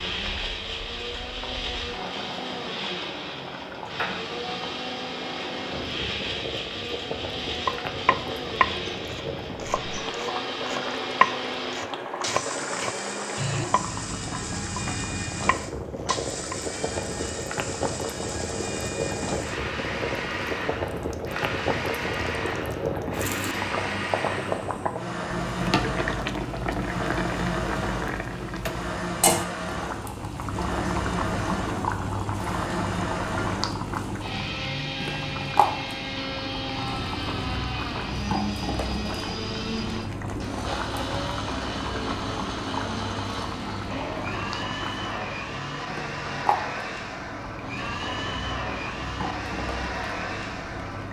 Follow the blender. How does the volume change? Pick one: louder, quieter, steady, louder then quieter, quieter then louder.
steady.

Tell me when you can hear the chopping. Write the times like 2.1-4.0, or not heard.
7.7-14.0, 15.4-16.6.